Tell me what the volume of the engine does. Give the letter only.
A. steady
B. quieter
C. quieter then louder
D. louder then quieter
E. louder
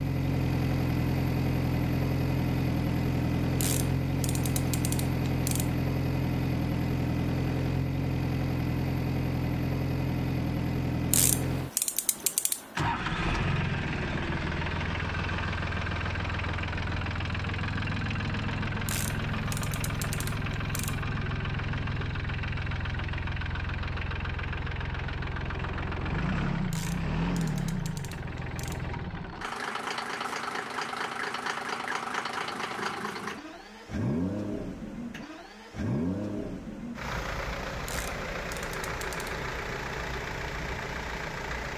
B.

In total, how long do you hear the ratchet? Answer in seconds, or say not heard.
10 s.